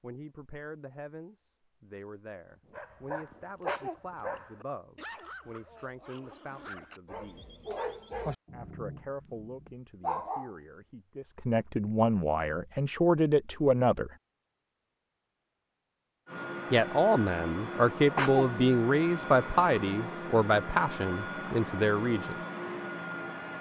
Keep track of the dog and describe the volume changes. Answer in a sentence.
The volume of the dog goes down, then up.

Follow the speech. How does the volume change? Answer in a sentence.
The volume of the speech goes up.